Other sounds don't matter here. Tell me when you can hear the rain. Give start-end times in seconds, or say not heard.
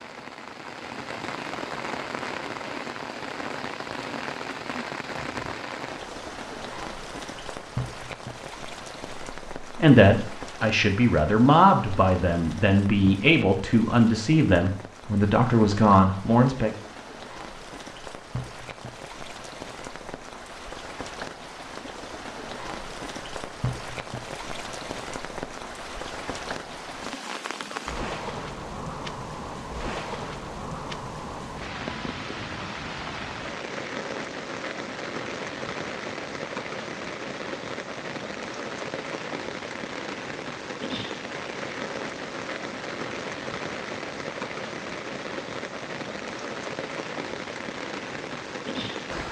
0.0-49.2.